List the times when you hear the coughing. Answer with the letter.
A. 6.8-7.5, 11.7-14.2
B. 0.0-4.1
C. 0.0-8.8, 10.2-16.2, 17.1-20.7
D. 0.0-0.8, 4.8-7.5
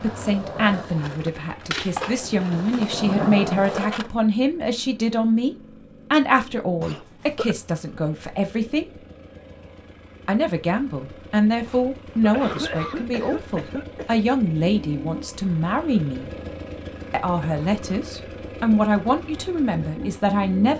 A.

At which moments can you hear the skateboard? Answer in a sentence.
The skateboard can be heard from 0.0 to 4.1 s.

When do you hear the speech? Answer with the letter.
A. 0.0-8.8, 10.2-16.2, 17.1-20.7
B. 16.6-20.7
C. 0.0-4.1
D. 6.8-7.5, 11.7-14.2
A.